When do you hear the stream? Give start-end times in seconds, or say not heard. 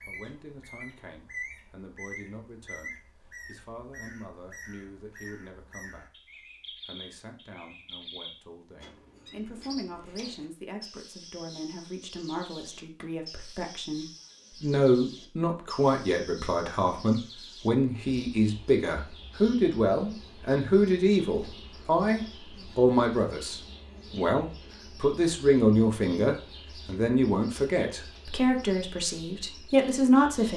not heard.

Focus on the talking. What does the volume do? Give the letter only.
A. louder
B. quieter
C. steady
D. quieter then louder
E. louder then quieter
A.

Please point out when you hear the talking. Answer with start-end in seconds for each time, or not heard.
0.0-30.5.